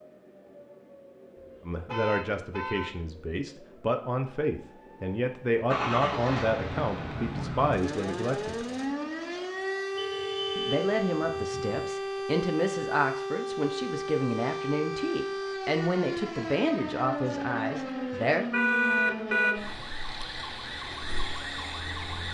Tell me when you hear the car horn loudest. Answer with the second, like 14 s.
19 s.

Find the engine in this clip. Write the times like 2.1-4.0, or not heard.
5.7-8.9.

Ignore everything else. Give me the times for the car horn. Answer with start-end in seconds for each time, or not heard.
1.9-2.9, 9.9-11.8, 18.5-19.6.